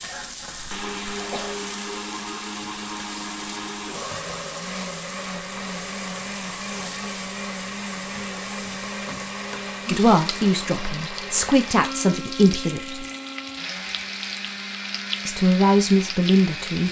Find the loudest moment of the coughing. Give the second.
1 s.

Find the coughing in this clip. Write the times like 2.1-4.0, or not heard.
0.0-1.6.